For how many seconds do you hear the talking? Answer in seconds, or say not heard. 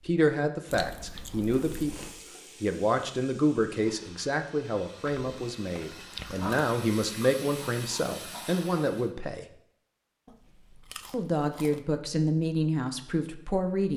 12 s.